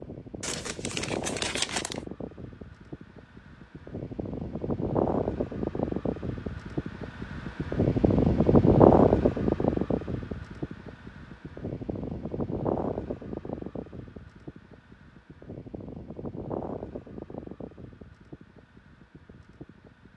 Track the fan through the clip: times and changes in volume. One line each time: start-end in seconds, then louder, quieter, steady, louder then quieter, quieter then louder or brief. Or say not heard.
0.0-20.1 louder then quieter.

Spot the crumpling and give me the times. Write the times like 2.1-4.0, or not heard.
0.4-2.0.